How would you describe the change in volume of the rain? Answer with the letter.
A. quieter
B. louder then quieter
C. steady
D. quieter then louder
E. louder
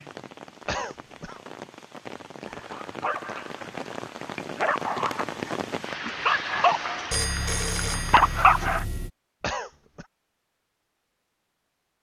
E.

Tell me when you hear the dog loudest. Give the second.
8 s.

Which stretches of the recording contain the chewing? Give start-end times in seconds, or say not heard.
not heard.